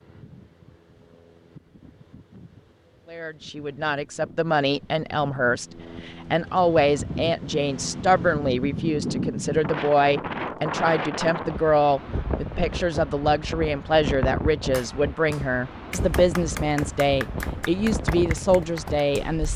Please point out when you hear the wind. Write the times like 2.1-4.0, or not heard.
0.0-19.5.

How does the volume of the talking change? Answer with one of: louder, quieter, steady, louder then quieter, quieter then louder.
steady.